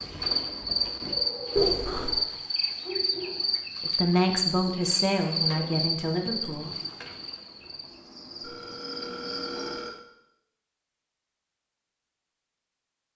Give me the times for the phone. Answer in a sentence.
You can hear the phone from 1.6 to 2.2 s and from 8.4 to 10.0 s.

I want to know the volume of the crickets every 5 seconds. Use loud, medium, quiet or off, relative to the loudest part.
loud, medium, off.